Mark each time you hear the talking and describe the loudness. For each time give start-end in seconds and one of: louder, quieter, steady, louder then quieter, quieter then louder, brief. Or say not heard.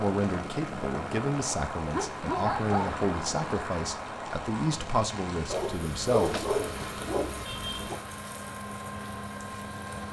0.0-6.5 steady.